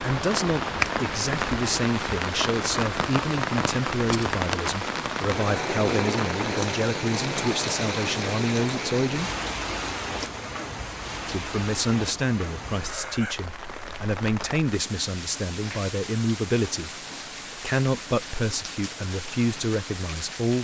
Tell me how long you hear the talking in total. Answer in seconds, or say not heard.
18 s.